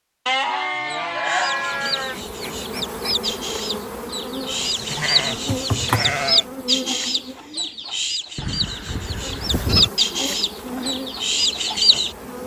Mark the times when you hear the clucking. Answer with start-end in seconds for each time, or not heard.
1.1-12.2.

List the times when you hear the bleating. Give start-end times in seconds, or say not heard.
0.2-2.1, 4.5-6.5, 8.3-9.9.